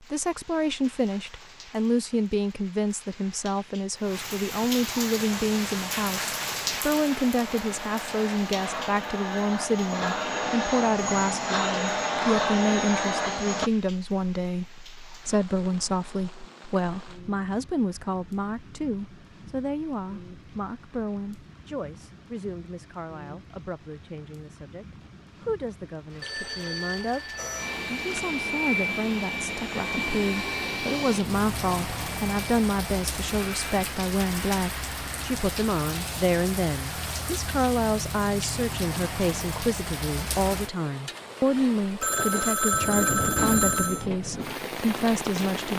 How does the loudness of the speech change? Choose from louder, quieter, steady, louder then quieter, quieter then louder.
quieter then louder.